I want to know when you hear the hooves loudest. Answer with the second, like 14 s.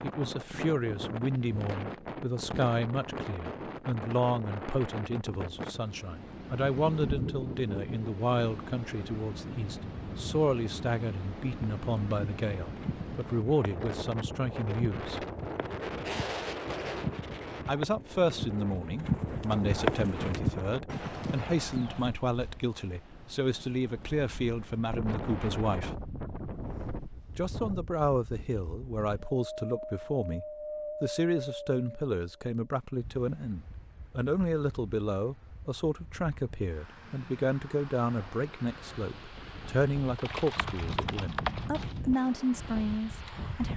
20 s.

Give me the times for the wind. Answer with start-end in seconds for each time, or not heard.
0.0-43.7.